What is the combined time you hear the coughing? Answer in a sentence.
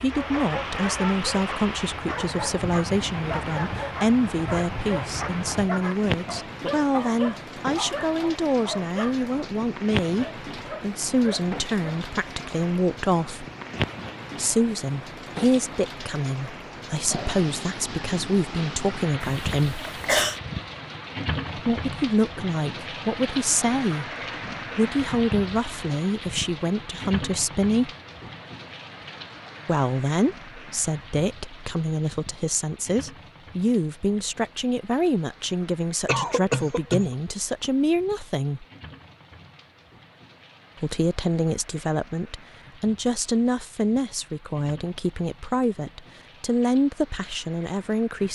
You can hear the coughing for 2 seconds altogether.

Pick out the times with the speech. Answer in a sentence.
The speech can be heard from 0.0 to 13.4 s, from 14.3 to 19.8 s, from 21.6 to 24.1 s, from 24.8 to 27.9 s, from 29.6 to 38.6 s and from 40.8 to 48.2 s.